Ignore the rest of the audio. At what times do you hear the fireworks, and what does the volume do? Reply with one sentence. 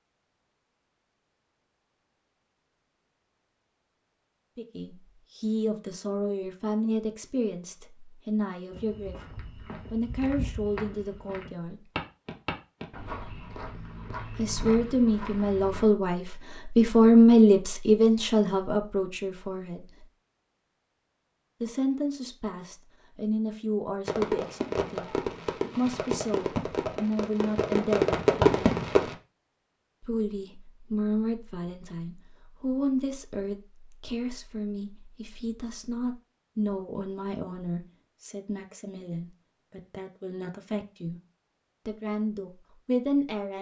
The fireworks can be heard from 24.1 to 29.1 s, getting louder.